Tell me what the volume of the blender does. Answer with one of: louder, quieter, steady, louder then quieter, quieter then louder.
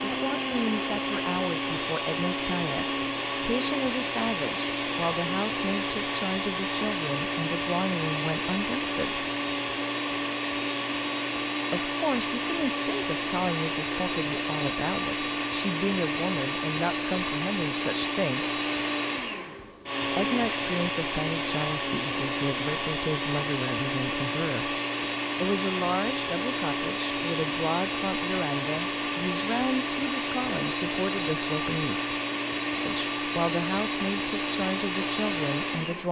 steady.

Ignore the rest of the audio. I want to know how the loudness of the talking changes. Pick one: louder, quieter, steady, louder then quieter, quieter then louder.
steady.